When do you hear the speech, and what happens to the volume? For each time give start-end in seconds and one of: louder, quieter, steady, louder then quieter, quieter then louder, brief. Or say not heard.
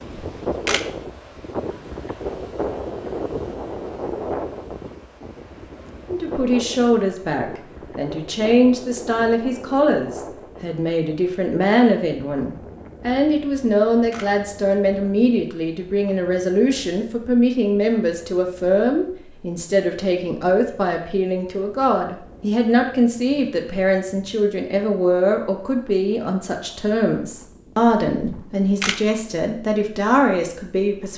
6.0-31.1 steady.